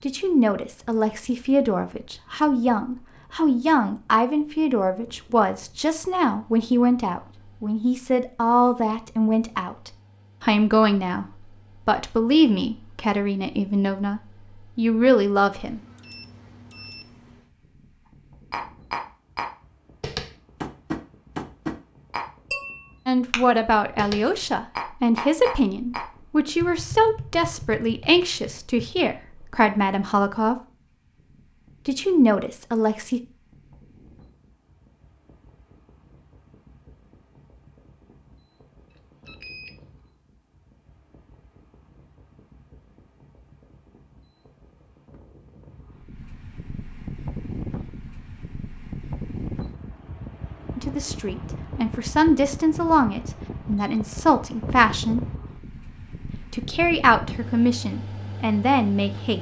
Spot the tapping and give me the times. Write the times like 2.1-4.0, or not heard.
18.5-29.1.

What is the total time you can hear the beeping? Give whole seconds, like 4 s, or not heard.
3 s.